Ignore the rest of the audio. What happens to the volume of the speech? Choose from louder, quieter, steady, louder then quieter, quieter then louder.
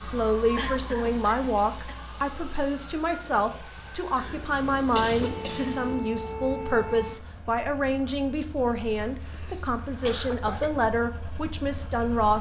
steady.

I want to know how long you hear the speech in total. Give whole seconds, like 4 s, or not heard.
12 s.